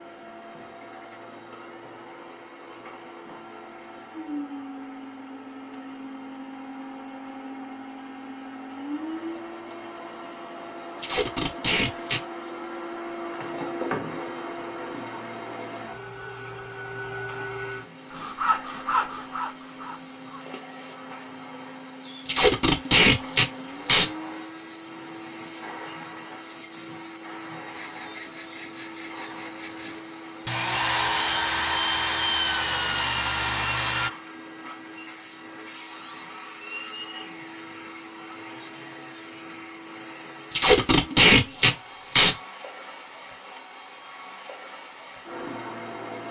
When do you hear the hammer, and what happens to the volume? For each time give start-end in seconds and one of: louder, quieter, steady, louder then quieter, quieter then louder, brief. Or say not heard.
not heard.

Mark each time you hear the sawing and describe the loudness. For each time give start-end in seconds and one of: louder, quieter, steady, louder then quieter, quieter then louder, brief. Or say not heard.
18.1-20.4 brief
27.6-34.1 louder.